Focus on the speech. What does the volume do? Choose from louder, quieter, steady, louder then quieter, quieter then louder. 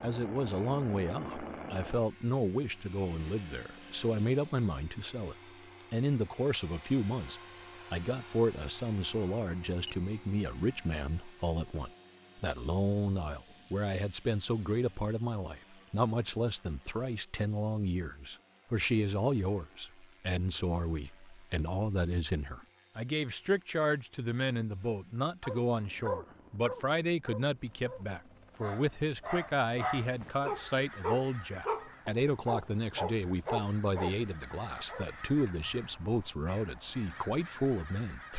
steady.